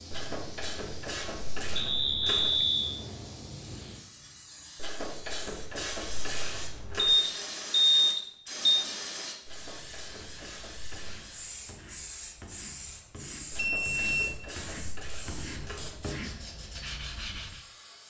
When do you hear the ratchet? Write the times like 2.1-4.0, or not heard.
0.1-2.6, 4.8-7.2, 9.4-11.3, 13.5-16.0.